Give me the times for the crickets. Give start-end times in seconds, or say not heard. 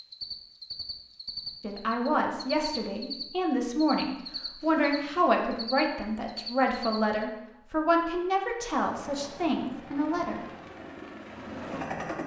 0.0-7.2.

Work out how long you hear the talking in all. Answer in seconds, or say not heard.
9 s.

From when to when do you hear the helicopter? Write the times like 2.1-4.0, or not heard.
8.8-12.2.